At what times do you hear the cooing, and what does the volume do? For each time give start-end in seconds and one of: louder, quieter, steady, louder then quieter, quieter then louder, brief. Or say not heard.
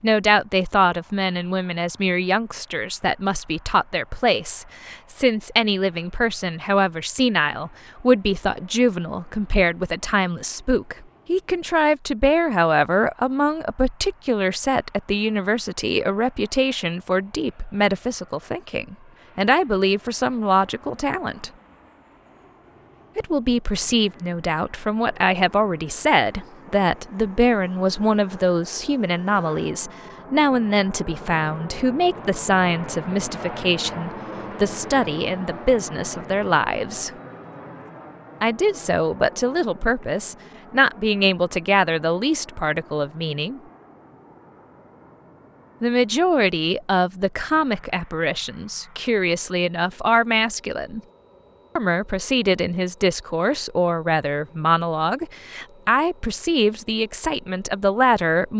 not heard.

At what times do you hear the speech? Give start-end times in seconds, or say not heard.
0.0-21.5, 23.1-37.1, 38.4-43.6, 45.8-51.0, 51.8-58.5.